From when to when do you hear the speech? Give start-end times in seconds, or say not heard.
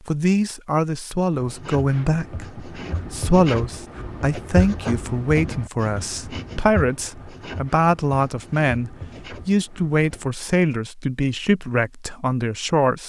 0.1-13.0.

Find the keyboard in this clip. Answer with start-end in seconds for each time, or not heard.
not heard.